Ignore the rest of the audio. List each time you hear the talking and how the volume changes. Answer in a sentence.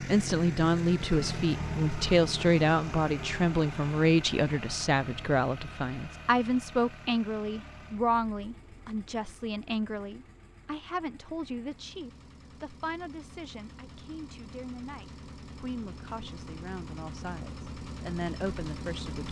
You can hear the talking from 0.0 to 19.2 s, getting quieter.